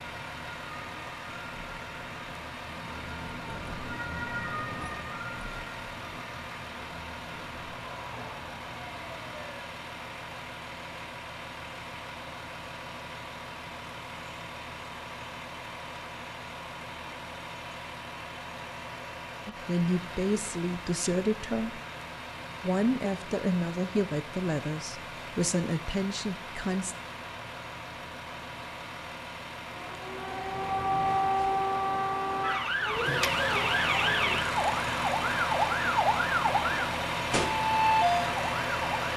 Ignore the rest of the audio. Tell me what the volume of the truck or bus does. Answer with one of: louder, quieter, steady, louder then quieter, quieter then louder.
louder.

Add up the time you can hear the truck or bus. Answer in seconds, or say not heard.
39 s.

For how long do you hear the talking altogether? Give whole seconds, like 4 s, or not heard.
7 s.